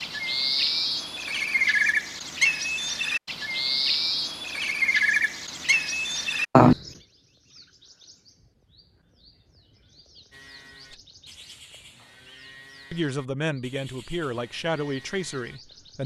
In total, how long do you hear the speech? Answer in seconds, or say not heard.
3 s.